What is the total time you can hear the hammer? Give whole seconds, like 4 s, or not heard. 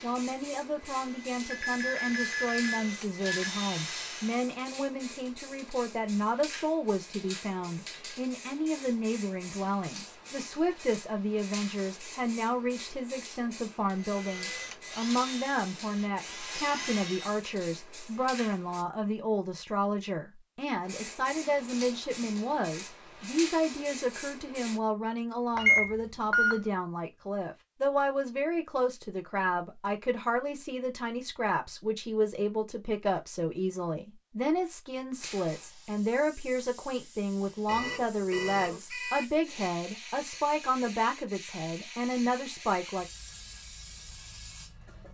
not heard.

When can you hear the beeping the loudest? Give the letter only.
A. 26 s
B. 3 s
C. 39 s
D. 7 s
A.